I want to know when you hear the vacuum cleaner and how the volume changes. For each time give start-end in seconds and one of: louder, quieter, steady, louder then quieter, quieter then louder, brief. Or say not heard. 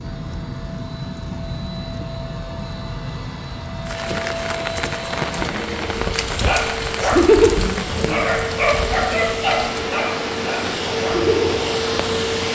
0.0-12.4 louder.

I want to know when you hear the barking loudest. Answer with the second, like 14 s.
7 s.